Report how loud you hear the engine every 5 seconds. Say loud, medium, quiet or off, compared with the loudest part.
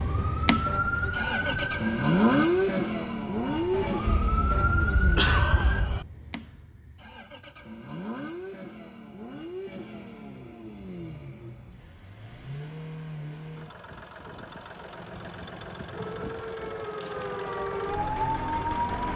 loud, quiet, quiet, quiet.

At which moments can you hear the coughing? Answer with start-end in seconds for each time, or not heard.
4.0-6.0.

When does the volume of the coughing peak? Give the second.
5 s.